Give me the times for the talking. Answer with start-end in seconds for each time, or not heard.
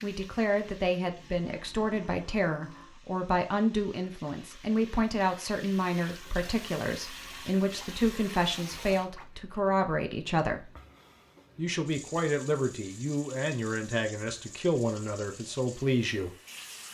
0.0-10.7, 11.6-16.3.